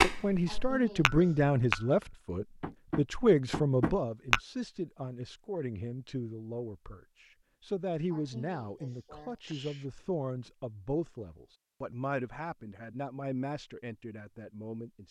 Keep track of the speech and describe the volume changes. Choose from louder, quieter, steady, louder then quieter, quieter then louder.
quieter.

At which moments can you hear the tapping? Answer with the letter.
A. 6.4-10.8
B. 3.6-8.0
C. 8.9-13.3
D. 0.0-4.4
D.